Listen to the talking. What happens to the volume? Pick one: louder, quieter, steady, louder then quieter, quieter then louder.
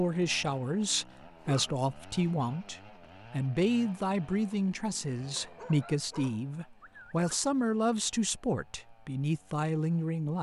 steady.